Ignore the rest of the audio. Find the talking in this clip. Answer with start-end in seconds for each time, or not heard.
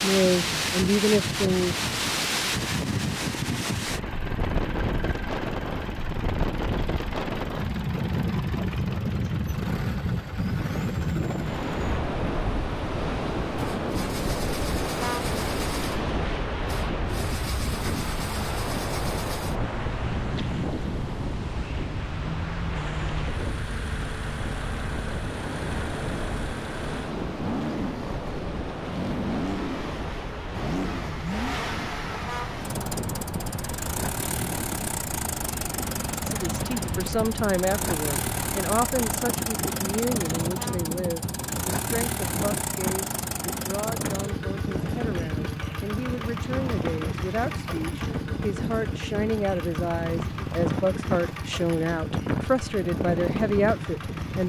0.0-1.8, 36.2-54.4.